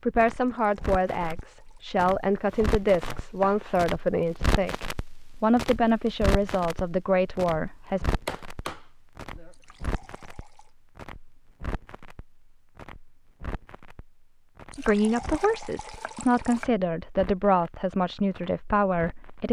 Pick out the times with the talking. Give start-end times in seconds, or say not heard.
0.0-8.1, 14.8-19.4.